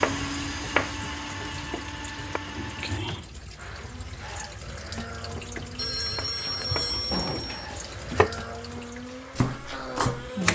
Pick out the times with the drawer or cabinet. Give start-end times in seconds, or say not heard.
2.5-3.2, 7.1-8.2.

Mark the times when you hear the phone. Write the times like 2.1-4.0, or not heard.
5.8-7.7.